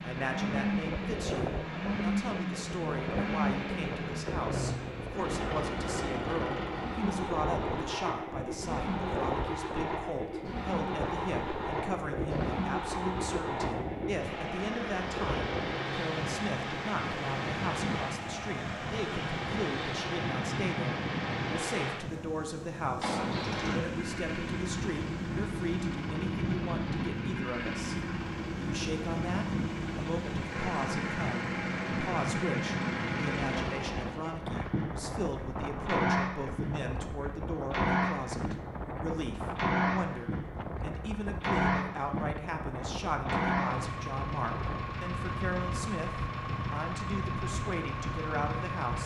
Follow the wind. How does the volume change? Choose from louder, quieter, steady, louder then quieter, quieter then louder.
steady.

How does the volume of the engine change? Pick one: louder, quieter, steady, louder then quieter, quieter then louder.
steady.